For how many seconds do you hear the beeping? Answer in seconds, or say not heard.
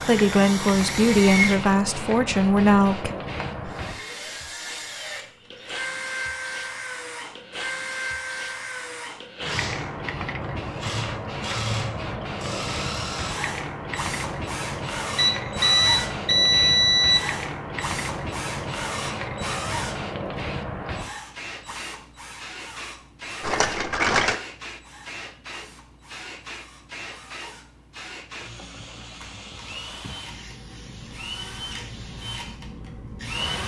2 s.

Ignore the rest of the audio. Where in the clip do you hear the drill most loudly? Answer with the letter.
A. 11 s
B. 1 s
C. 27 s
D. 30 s
B.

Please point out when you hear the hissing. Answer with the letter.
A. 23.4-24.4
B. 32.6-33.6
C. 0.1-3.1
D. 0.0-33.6
D.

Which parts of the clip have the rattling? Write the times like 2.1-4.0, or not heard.
23.4-24.4.